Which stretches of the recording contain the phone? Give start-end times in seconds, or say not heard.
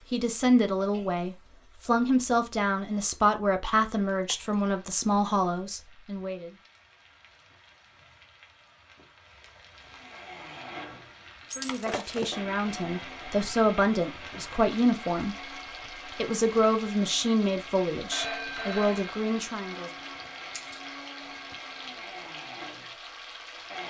18.1-19.1.